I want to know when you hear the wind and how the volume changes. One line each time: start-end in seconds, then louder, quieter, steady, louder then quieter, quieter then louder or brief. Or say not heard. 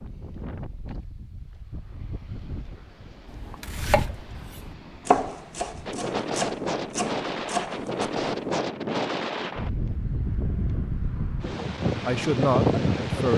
0.0-13.3 louder.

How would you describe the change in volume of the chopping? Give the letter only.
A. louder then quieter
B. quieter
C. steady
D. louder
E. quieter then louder
A.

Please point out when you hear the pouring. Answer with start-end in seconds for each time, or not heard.
not heard.